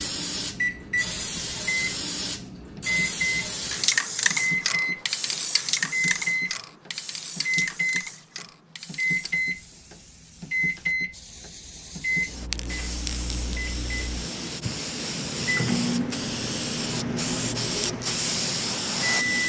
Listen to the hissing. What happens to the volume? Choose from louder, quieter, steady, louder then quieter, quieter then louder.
quieter then louder.